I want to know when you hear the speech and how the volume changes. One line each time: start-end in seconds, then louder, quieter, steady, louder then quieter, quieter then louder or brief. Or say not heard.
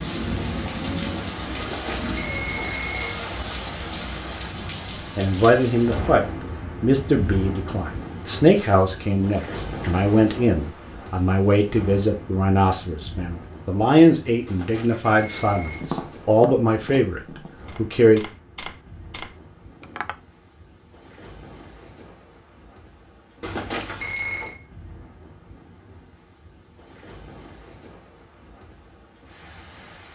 5.2-18.2 steady.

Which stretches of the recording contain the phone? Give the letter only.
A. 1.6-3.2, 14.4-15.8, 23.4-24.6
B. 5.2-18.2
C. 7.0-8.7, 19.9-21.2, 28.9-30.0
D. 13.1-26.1
A.